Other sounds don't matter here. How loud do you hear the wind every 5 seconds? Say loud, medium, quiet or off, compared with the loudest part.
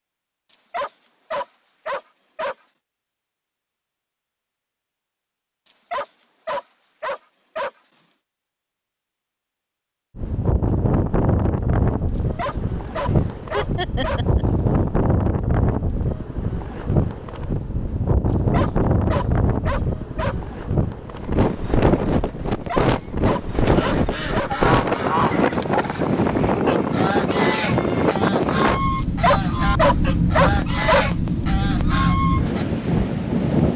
off, off, loud, loud, loud, loud, loud.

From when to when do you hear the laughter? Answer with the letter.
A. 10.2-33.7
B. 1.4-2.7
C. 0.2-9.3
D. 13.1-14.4
D.